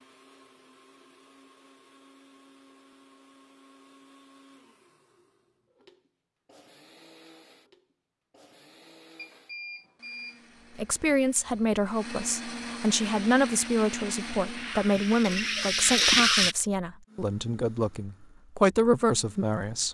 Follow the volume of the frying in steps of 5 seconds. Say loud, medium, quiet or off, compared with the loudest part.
off, off, quiet, loud.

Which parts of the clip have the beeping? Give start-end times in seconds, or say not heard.
9.2-10.8.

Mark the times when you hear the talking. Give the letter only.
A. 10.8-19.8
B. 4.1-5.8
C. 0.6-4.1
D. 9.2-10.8
A.